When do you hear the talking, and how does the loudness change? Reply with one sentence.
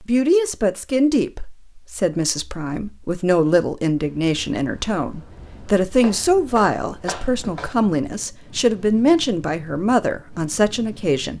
The talking can be heard from 0.0 to 11.3 s, at a steady volume.